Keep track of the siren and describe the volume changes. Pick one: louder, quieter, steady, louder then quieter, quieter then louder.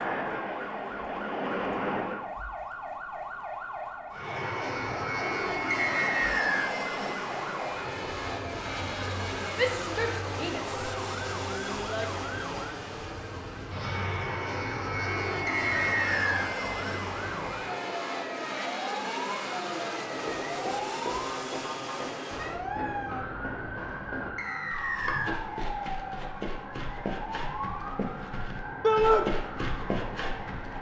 steady.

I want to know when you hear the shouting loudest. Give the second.
29 s.